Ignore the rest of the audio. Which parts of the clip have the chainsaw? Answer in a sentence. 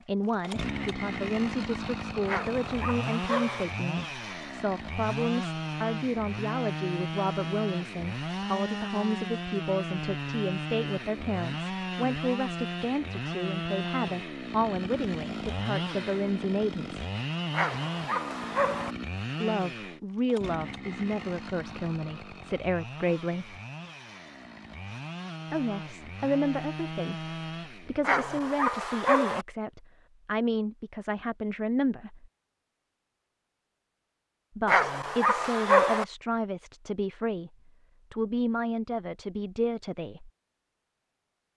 The chainsaw can be heard from 0.0 to 28.1 s.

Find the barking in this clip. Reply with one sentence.
The barking can be heard from 2.2 to 3.6 s, from 17.5 to 18.9 s, from 28.0 to 29.4 s and from 34.6 to 36.0 s.